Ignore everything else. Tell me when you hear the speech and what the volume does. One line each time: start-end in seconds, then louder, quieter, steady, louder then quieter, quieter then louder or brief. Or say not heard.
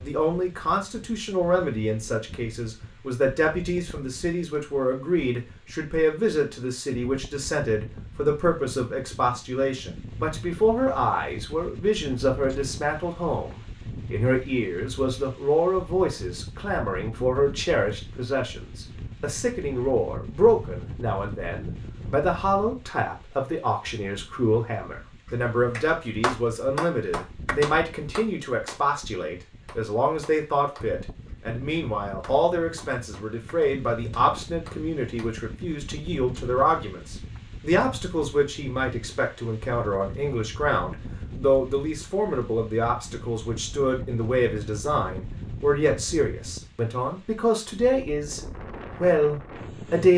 0.0-48.4 steady
49.0-50.1 brief.